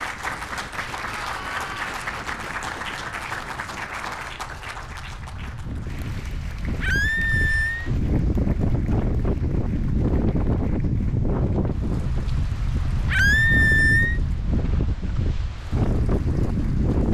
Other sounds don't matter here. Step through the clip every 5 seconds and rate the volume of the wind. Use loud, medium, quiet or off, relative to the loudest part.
quiet, loud, loud, loud.